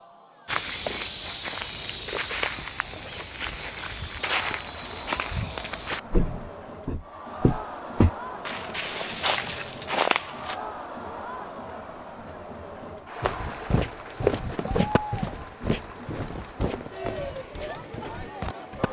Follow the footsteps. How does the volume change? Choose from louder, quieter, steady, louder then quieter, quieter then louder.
quieter.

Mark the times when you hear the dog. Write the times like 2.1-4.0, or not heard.
not heard.